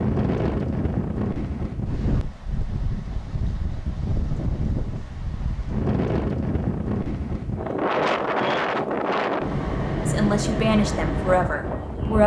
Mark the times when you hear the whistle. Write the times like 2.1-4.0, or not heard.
not heard.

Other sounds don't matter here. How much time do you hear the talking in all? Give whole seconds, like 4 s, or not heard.
2 s.